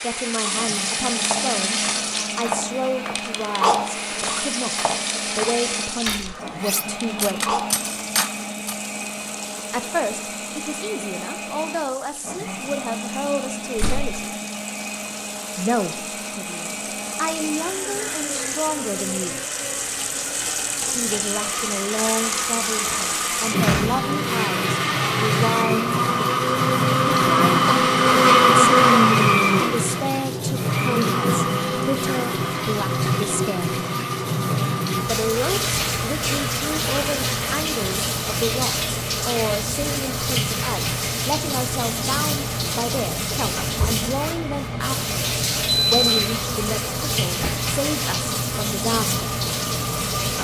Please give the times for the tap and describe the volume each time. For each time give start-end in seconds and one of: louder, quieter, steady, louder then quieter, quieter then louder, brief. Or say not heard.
0.0-50.3 quieter then louder.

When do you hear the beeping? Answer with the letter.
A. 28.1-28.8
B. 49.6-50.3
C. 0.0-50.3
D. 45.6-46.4
D.